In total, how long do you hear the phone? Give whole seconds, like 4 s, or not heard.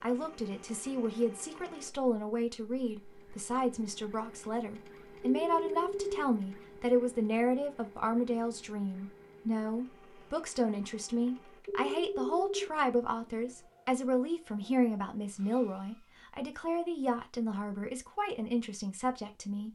2 s.